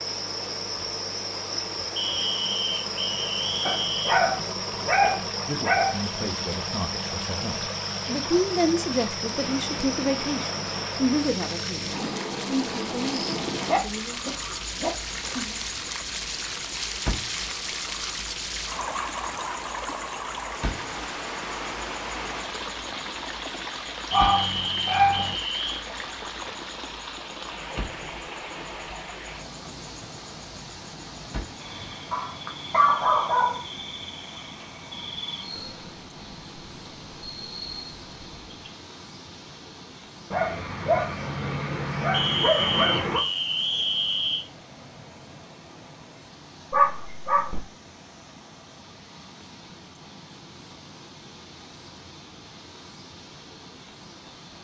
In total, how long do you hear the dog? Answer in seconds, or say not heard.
11 s.